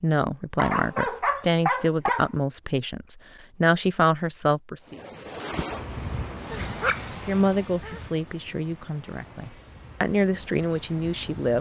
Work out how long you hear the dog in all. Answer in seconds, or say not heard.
3 s.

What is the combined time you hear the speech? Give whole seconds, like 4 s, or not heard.
9 s.